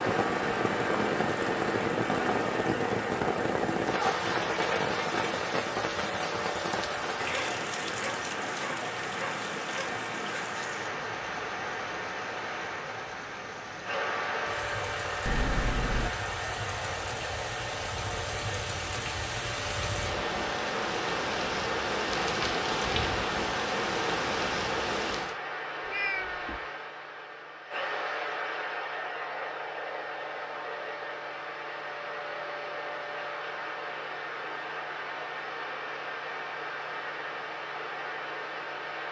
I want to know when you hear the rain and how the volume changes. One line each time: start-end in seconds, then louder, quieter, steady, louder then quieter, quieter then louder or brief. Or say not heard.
0.0-25.4 quieter then louder.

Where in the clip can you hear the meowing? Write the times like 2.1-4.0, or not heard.
15.2-16.1, 25.8-26.6.